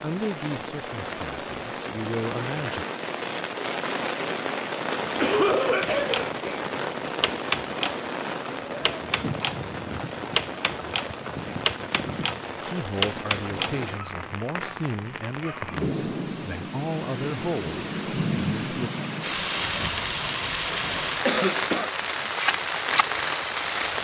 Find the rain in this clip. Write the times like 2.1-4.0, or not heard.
0.0-24.0.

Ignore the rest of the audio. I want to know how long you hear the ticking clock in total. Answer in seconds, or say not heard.
not heard.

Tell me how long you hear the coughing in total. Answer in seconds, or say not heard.
2 s.